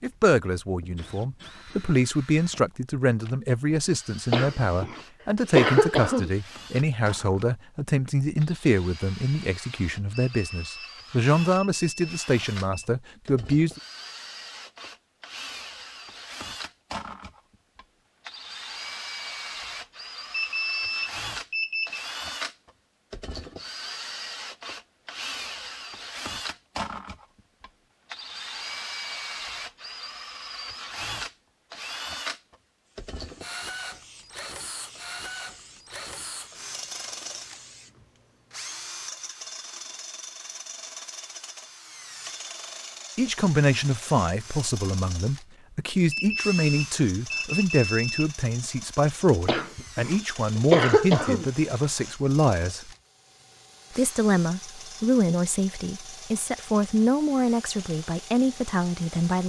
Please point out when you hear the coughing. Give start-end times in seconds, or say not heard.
4.3-6.3, 49.5-51.5.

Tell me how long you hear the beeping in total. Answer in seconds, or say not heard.
7 s.